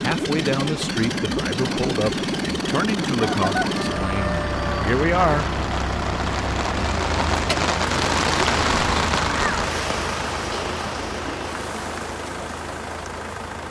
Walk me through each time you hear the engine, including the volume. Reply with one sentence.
The engine can be heard from 0.0 to 13.6 s, getting quieter.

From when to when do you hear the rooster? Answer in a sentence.
You can hear the rooster from 3.1 to 5.0 s.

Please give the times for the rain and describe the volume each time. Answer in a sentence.
You can hear the rain from 0.0 to 13.6 s, getting louder then quieter.